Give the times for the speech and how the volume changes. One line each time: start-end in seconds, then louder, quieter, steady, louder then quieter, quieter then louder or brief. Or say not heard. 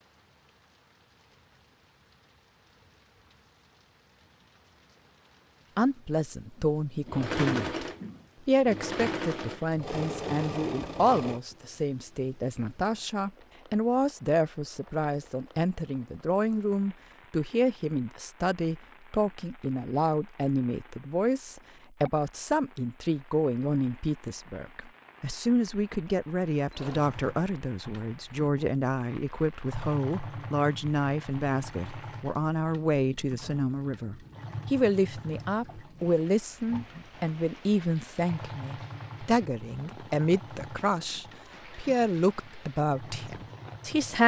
5.8-7.8 brief
8.4-44.2 steady.